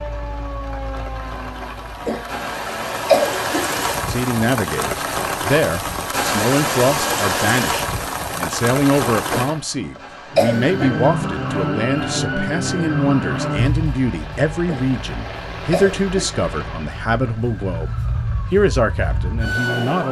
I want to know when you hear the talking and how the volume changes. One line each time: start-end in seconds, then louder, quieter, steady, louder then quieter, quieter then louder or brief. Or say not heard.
4.0-17.9 steady
18.5-20.0 brief.